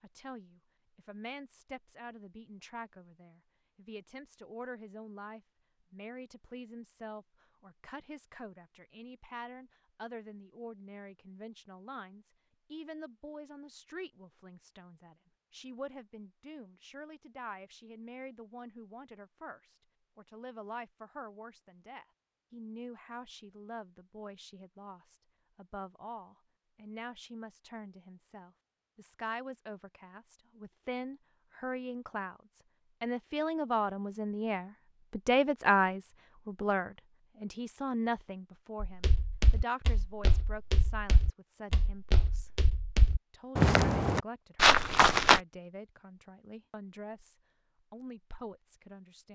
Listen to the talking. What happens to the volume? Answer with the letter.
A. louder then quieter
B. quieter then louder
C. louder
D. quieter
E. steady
A.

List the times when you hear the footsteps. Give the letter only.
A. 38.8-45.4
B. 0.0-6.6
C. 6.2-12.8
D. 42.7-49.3
A.